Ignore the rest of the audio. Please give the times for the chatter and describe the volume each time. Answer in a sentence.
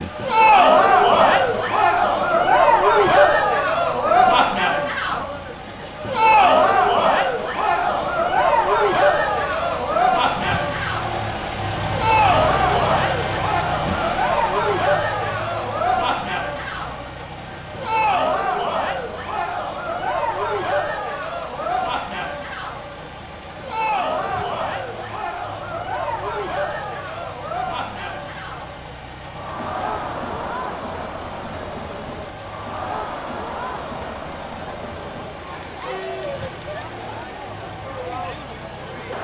The chatter can be heard from 0.1 to 39.1 s, getting quieter.